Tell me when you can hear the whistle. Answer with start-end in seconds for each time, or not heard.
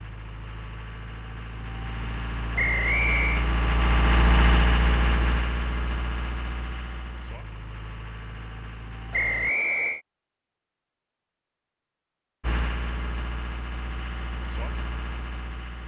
2.5-3.5, 9.1-10.0.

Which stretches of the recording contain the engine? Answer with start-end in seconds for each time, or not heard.
0.0-9.6, 12.4-15.8.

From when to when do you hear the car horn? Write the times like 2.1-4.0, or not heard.
not heard.